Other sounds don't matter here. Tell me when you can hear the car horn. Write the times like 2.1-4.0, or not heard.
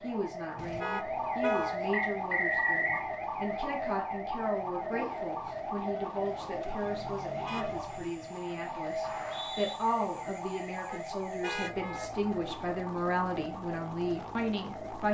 0.6-1.8, 6.2-8.1, 10.8-12.1.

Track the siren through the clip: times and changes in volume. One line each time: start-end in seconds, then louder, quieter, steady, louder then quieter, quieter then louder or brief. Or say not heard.
0.0-15.0 quieter.